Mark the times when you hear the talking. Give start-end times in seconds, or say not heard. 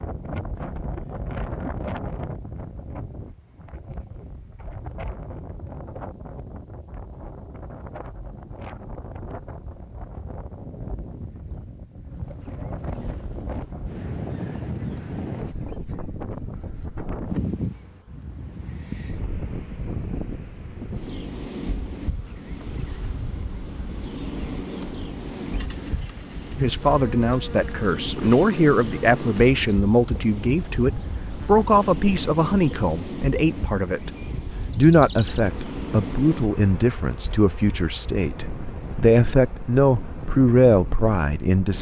26.6-34.1, 34.7-41.7.